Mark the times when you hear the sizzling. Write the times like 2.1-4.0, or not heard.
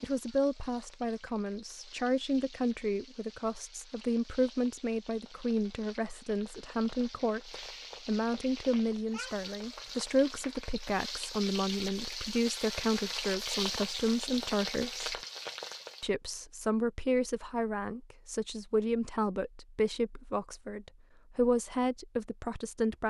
0.0-16.1.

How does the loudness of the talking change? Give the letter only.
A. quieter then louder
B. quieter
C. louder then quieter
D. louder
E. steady
E.